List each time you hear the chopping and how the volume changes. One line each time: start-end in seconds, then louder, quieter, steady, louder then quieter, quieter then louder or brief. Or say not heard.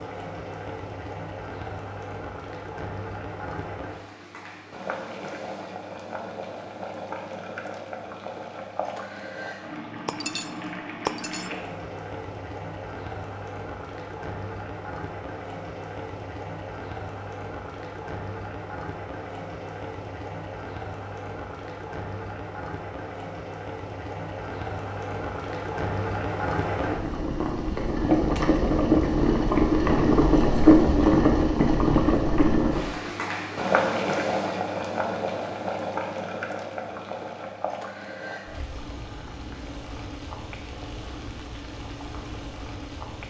not heard.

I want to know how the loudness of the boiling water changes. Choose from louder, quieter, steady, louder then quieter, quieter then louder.
louder then quieter.